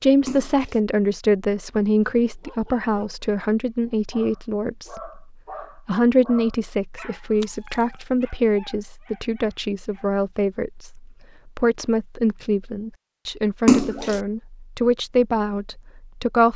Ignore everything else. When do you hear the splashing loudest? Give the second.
14 s.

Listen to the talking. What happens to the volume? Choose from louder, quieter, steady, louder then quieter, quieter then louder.
steady.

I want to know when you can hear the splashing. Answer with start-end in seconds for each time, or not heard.
0.2-0.8, 7.4-8.1, 13.7-14.2.